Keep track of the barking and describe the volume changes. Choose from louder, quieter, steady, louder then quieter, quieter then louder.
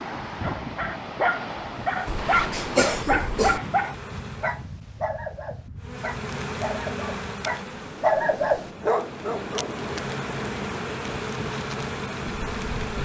quieter then louder.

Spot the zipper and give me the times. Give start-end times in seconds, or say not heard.
2.1-2.6.